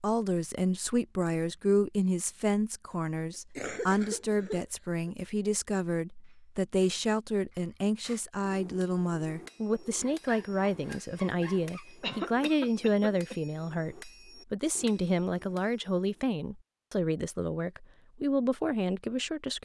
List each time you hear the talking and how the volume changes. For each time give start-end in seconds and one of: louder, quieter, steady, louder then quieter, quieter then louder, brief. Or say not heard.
0.0-19.5 steady.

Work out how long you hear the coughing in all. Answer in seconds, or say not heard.
3 s.